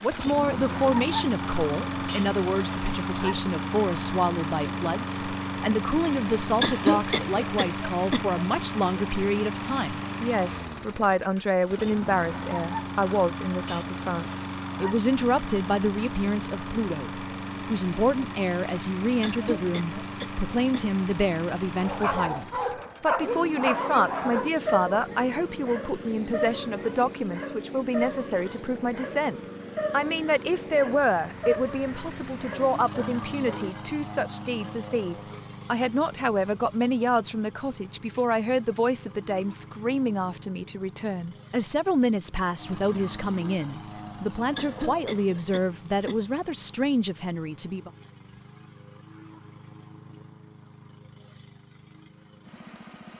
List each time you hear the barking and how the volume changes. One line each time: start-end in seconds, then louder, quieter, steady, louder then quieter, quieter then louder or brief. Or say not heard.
21.8-33.6 quieter.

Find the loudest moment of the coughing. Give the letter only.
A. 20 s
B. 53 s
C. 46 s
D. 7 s
D.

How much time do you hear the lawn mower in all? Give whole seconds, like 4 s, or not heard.
53 s.